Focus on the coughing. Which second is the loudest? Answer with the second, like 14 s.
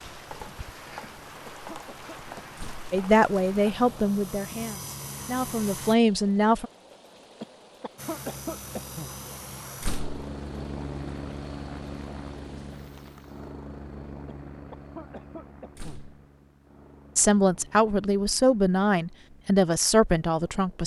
8 s.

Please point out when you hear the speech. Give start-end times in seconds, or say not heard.
2.9-6.7, 17.1-20.8.